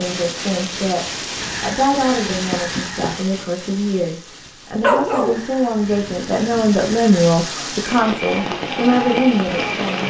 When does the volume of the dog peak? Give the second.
5 s.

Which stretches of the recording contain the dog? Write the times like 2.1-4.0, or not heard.
4.8-6.8.